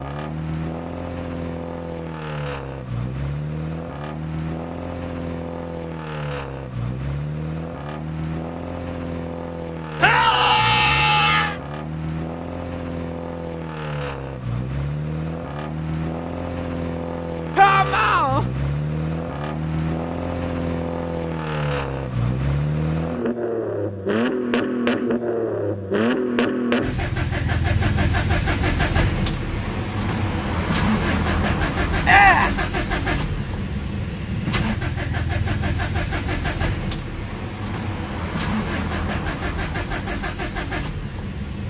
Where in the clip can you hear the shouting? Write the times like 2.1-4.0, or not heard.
10.0-11.6, 17.6-18.4, 32.0-32.6.